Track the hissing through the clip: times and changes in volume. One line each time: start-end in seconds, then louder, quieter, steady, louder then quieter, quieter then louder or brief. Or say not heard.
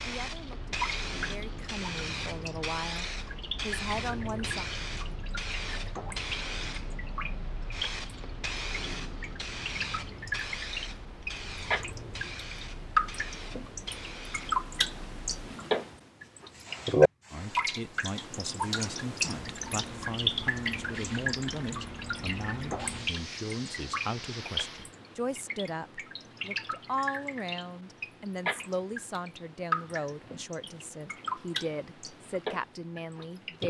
0.0-24.9 quieter then louder.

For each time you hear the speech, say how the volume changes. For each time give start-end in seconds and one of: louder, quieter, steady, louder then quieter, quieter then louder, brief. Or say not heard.
0.0-4.7 louder
17.3-33.6 steady.